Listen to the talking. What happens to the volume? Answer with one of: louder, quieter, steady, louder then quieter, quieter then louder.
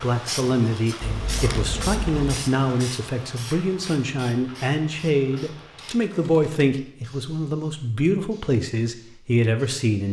steady.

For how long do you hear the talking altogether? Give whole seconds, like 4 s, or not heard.
10 s.